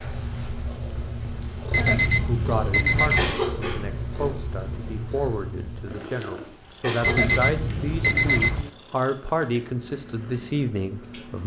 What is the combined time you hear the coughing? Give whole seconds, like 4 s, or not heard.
2 s.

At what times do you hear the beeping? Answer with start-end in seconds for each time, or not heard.
1.7-3.4, 7.0-8.7.